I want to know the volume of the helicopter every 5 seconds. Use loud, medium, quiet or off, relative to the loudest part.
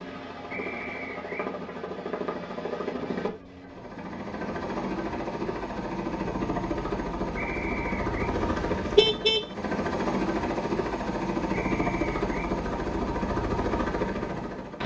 medium, loud, loud.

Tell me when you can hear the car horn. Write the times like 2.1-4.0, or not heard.
8.3-9.4.